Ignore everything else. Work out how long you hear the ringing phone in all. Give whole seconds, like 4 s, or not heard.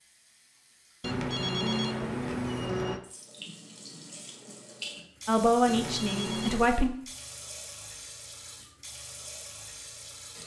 3 s.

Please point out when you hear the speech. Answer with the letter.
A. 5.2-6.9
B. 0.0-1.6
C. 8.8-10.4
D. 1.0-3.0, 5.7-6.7
A.